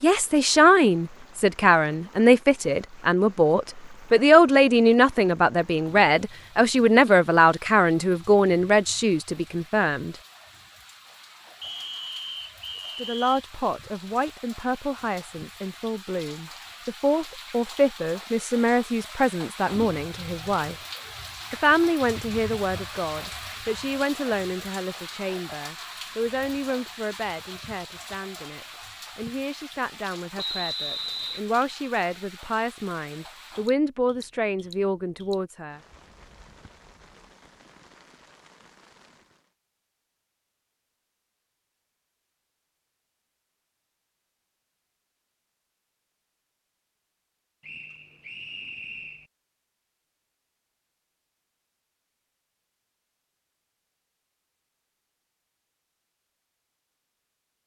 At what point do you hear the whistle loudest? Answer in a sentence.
The volume of the whistle peaks at 31 seconds.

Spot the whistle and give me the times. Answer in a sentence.
You can hear the whistle from 11.6 to 13.4 s, from 30.4 to 31.4 s and from 47.6 to 49.2 s.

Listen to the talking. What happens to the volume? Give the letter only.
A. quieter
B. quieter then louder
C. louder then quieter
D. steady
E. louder
A.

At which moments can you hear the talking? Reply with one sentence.
You can hear the talking from 0.0 to 10.2 s, from 12.8 to 20.8 s and from 21.5 to 35.8 s.